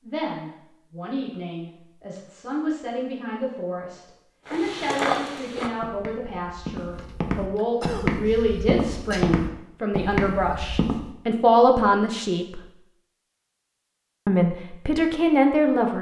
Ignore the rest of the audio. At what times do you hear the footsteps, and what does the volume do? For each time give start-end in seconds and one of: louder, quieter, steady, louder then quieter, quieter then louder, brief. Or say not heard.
4.5-11.1 quieter then louder.